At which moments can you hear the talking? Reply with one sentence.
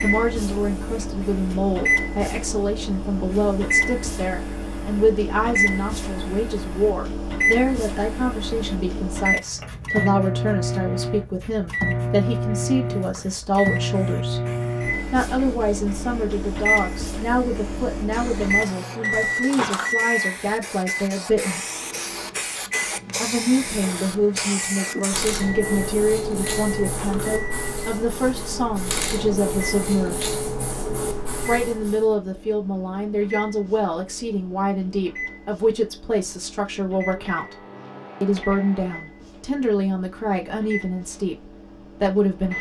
You can hear the talking from 0.0 to 14.4 s, from 15.1 to 21.6 s, from 23.1 to 30.3 s, from 31.4 to 37.5 s and from 38.2 to 42.5 s.